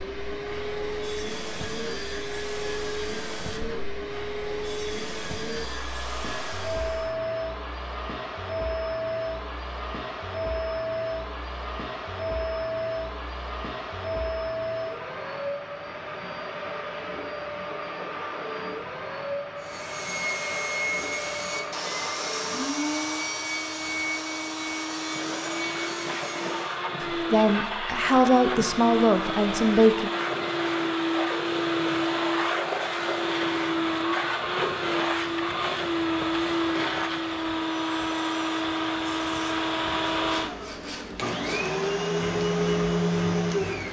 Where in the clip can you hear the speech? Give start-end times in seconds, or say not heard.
27.0-30.1.